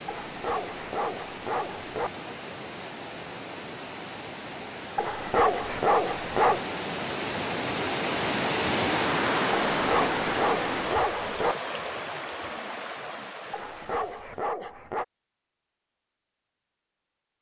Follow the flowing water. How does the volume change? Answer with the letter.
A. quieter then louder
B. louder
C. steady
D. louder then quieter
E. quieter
D.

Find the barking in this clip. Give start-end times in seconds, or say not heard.
0.1-2.1, 5.0-6.7, 9.8-11.6, 13.5-15.1.